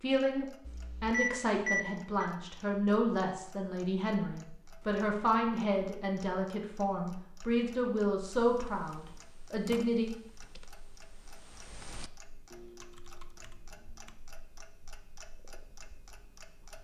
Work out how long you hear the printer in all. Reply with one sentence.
The printer can't be heard in this clip.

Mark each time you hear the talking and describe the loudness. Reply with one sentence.
The talking can be heard from 0.0 to 10.1 s, at a steady volume.